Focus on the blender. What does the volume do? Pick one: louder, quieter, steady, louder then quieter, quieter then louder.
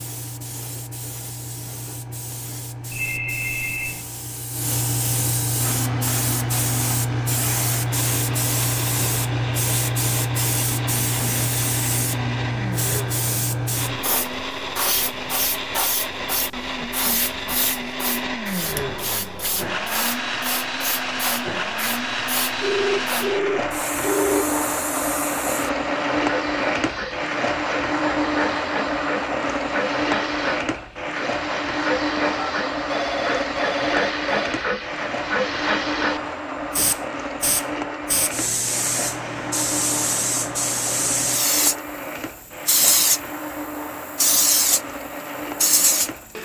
louder then quieter.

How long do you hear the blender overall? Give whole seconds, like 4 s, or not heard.
41 s.